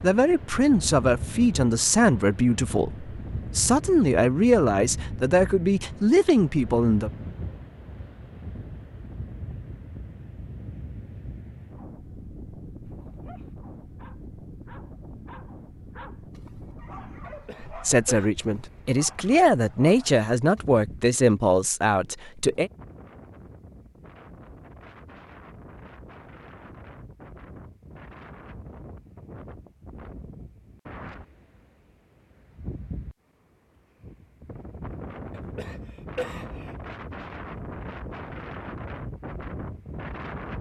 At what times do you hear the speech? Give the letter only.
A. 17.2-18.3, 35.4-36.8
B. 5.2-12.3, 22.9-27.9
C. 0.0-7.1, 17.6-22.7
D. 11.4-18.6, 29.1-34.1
C.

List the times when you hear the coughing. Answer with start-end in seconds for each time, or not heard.
17.2-18.3, 35.4-36.8.